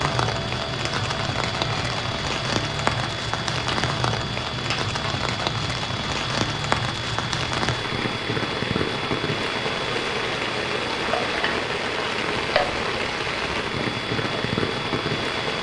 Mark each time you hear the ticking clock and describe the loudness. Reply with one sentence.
The ticking clock can be heard from 0.0 to 15.5 s, at a steady volume.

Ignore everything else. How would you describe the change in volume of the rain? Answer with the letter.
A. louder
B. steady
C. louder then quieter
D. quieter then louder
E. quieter
B.